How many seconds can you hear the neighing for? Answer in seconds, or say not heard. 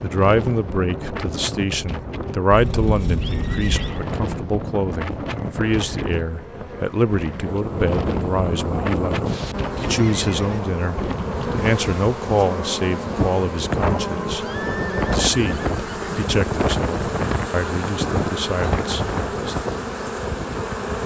4 s.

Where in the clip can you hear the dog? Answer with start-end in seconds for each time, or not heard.
not heard.